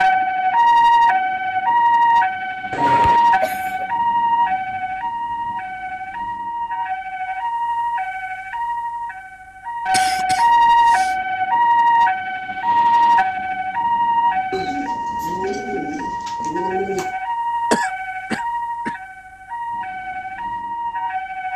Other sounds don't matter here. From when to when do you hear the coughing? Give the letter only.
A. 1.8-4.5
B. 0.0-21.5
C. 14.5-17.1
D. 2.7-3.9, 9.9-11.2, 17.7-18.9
D.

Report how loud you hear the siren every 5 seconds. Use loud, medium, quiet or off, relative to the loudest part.
loud, medium, loud, medium, medium.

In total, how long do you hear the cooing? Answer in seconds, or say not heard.
3 s.